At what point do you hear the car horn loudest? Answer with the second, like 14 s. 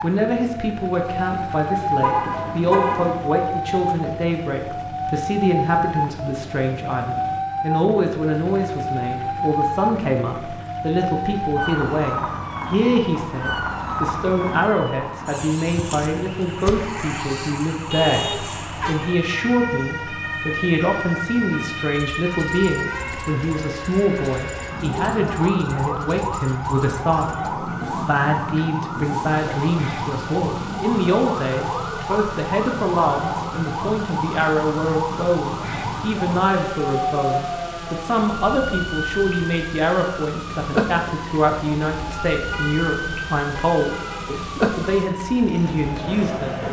3 s.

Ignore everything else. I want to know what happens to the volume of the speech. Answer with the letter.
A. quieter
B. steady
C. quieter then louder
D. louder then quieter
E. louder
B.